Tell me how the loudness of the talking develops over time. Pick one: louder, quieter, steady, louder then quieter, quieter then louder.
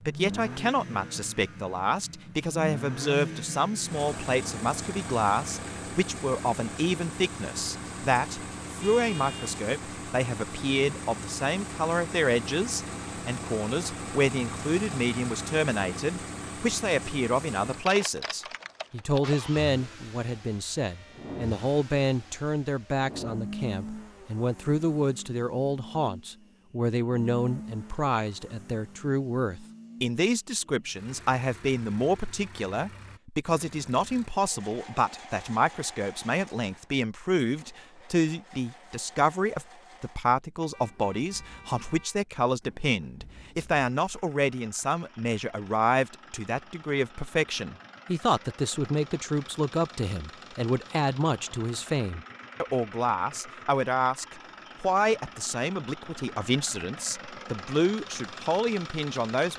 steady.